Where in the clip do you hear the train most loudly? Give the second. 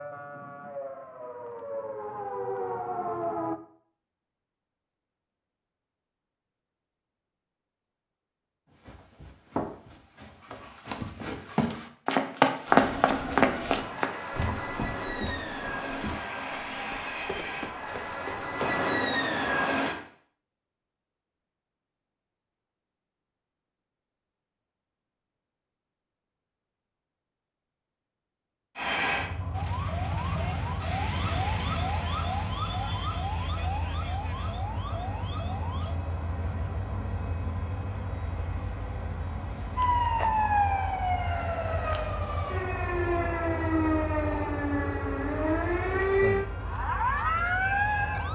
19 s.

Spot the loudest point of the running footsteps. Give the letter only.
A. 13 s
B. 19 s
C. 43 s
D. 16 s
A.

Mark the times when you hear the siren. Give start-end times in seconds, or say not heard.
0.0-3.5, 29.5-36.0, 39.8-48.3.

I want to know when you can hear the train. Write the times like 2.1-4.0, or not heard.
12.7-19.9, 28.8-48.3.